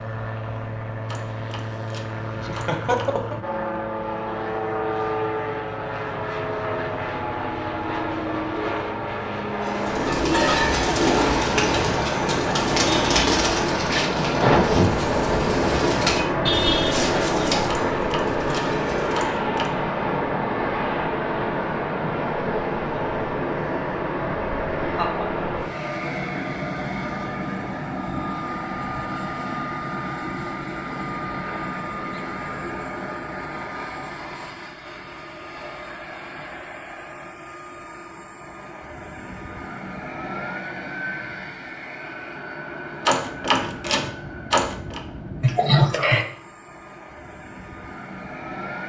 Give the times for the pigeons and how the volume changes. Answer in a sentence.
The pigeons can be heard from 9.6 to 19.3 s, getting quieter.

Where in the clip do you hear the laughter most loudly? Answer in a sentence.
The loudest moment of the laughter is at 46 seconds.